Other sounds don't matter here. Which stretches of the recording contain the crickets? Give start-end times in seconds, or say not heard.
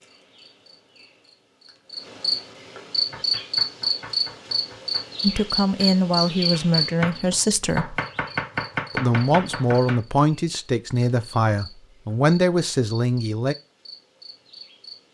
0.0-15.0.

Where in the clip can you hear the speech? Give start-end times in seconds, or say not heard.
5.2-8.0, 8.9-13.6.